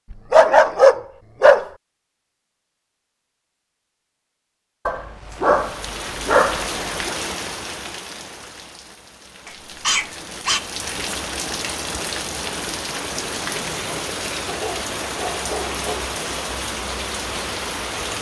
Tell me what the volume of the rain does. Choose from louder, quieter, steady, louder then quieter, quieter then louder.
quieter then louder.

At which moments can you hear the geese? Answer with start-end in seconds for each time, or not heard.
not heard.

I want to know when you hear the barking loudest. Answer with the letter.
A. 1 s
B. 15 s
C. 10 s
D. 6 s
A.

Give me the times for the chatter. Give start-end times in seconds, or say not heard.
not heard.